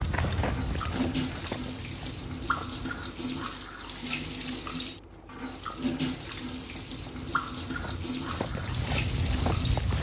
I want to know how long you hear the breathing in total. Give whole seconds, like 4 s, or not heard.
not heard.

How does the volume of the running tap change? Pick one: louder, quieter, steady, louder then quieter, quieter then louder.
steady.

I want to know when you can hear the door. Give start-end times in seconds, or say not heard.
not heard.